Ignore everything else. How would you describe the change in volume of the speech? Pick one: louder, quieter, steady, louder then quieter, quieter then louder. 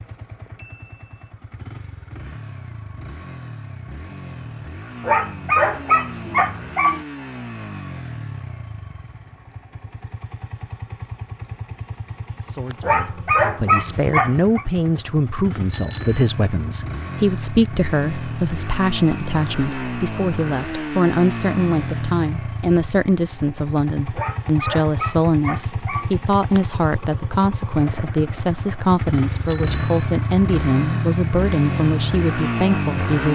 steady.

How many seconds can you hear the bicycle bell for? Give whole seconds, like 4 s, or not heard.
2 s.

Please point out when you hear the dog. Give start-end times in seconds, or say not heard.
5.0-7.0, 12.8-14.7, 24.1-26.1.